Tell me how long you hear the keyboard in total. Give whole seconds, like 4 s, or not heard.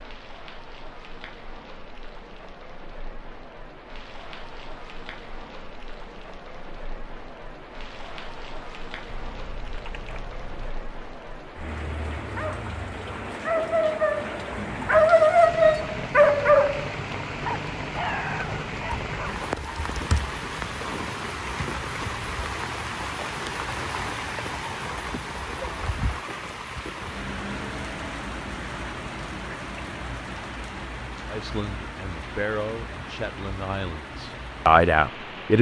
3 s.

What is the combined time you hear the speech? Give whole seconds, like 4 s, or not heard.
4 s.